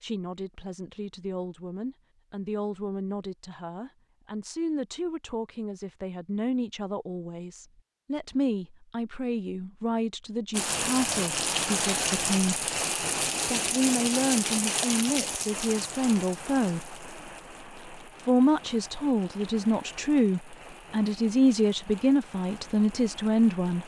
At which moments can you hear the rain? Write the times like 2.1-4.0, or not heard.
10.5-23.8.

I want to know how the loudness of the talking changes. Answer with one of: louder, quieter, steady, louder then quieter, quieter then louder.
louder.